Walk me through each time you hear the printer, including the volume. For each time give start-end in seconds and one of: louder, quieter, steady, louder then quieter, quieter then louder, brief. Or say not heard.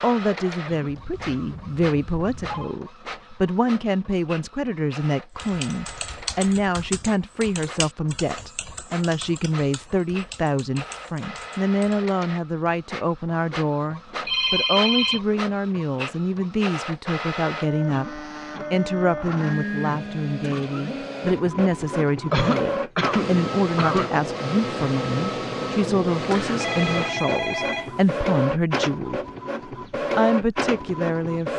0.0-31.5 louder.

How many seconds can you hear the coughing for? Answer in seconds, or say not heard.
4 s.